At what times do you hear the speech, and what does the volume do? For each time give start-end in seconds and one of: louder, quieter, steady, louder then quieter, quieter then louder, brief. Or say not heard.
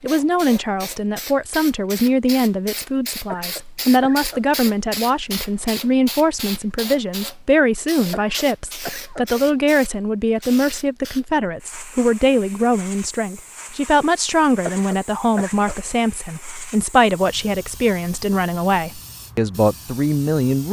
0.0-20.6 steady.